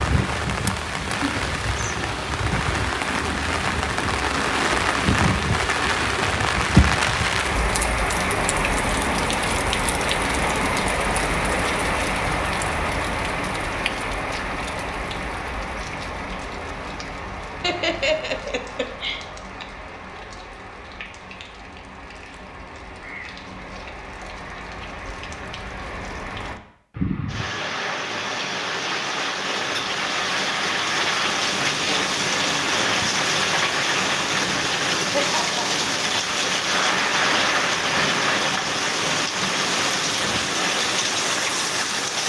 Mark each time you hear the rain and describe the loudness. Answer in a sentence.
You can hear the rain from 0.0 to 42.2 s, getting quieter then louder.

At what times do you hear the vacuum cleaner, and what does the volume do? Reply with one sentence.
The vacuum cleaner can't be heard in this clip.